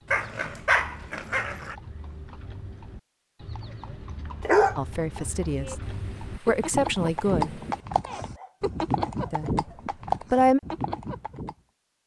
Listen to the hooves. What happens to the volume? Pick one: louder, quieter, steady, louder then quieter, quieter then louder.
louder.